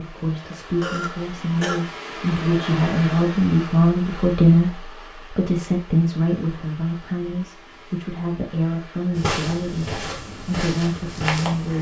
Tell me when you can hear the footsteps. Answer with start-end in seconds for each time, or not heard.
9.2-11.7.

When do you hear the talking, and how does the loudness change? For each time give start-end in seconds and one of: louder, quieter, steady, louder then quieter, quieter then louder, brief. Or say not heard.
0.0-11.7 louder then quieter.